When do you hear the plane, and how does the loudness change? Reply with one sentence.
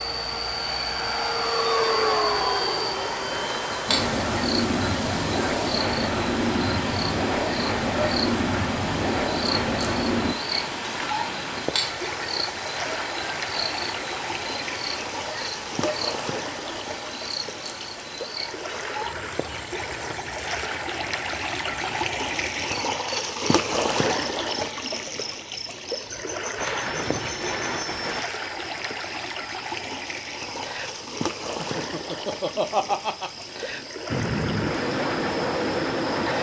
You can hear the plane from 0.0 to 10.3 s, at a steady volume; briefly from 26.6 to 28.2 s; and briefly from 34.0 to 36.3 s.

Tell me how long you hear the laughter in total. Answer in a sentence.
The laughter can be heard for 2 seconds in total.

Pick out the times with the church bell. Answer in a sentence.
You can't hear the church bell here.